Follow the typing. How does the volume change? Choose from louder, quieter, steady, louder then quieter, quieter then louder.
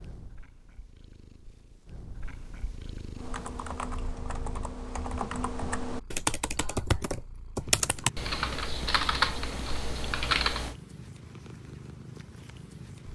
louder.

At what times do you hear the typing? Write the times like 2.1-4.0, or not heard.
3.1-10.8.